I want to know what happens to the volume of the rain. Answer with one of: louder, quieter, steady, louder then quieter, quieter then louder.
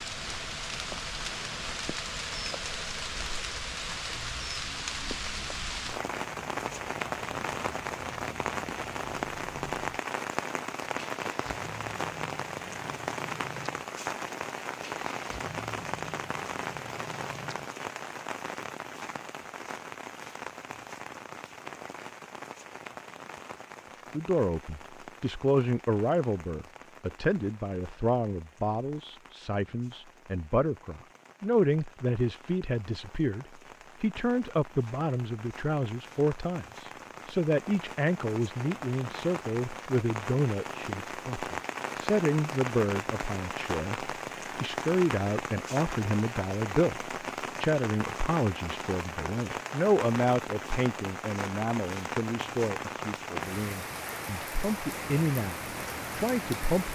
quieter then louder.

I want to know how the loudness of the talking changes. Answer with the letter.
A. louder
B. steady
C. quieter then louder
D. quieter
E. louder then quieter
B.